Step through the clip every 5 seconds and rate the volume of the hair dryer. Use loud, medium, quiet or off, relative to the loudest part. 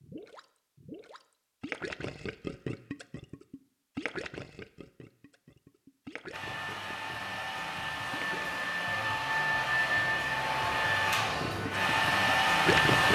off, medium, loud.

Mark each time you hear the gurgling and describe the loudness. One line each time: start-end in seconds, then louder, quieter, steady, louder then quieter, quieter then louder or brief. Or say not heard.
0.0-8.5 quieter
11.4-13.1 brief.